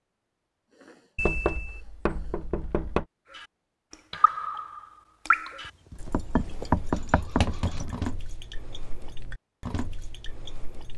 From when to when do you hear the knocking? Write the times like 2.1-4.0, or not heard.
1.1-3.0, 5.9-7.5.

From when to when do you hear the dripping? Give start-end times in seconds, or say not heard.
3.3-10.9.